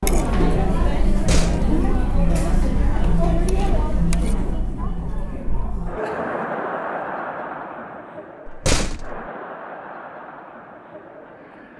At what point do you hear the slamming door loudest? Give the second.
9 s.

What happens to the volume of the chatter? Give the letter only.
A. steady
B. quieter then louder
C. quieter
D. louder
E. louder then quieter
C.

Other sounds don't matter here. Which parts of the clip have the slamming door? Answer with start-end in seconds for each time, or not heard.
1.1-1.8, 8.4-9.2.